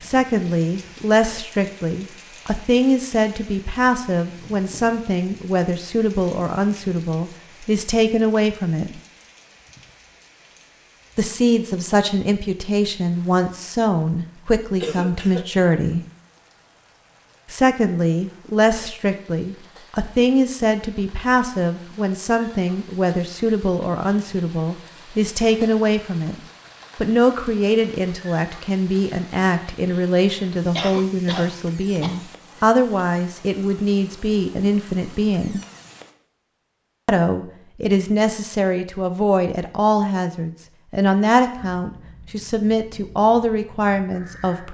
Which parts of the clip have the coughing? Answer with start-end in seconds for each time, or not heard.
14.8-15.4, 30.8-32.2.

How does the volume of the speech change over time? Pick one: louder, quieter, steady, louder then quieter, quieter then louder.
steady.